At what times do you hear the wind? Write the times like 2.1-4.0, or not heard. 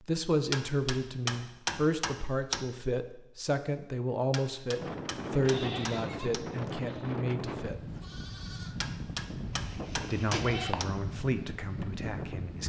4.8-12.6.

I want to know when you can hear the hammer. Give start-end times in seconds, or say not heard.
0.5-2.6, 4.3-6.5, 8.8-10.9.